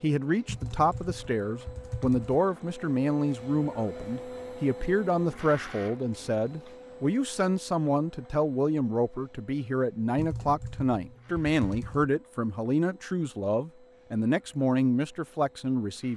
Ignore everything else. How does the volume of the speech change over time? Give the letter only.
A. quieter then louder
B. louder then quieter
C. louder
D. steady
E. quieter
D.